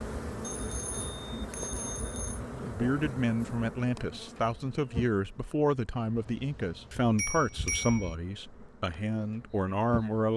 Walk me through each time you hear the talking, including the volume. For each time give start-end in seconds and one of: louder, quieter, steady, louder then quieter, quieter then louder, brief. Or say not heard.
2.5-10.3 steady.